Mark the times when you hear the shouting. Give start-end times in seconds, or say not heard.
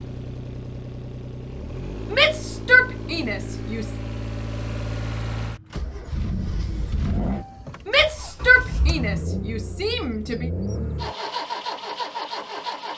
2.1-3.9, 7.8-10.5.